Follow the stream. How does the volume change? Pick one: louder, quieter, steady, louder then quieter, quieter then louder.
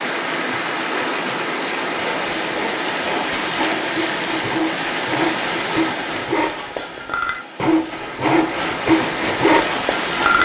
quieter then louder.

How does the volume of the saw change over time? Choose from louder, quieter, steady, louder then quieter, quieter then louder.
louder.